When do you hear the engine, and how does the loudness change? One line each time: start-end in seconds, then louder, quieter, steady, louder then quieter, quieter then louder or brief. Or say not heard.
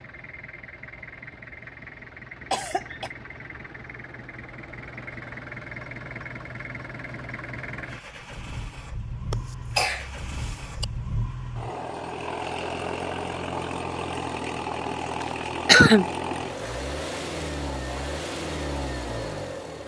0.0-19.8 louder.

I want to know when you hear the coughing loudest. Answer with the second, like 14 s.
16 s.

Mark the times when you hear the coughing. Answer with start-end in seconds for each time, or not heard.
2.5-3.1, 9.3-10.8, 15.2-16.1.